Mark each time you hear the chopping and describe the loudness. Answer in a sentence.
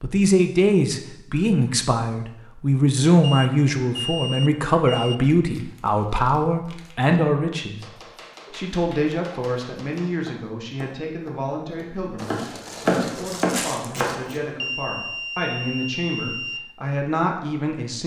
You can hear the chopping from 7.8 to 14.4 s, getting louder.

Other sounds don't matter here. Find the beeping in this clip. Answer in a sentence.
The beeping can be heard from 3.2 to 5.2 s and from 14.6 to 16.6 s.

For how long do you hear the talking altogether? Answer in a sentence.
You can hear the talking for 18 seconds altogether.